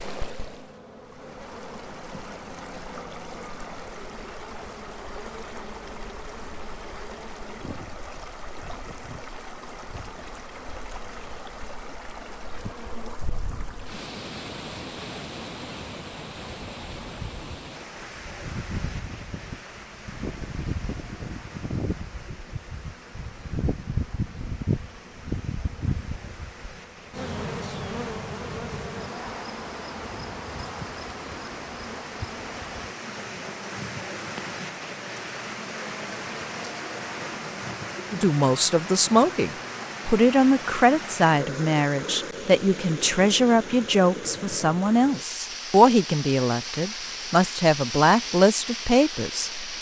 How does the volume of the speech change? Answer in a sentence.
The loudness of the speech stays about the same.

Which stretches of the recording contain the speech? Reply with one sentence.
You can hear the speech from 38.1 to 49.6 s.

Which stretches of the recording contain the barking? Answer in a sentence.
The barking can't be heard in this clip.